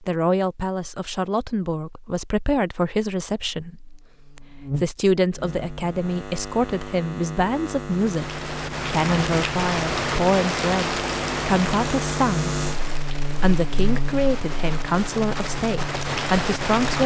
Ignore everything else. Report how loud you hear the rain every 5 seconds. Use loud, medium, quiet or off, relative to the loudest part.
off, loud, loud, loud.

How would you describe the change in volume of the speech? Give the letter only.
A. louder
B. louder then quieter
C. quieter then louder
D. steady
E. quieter
D.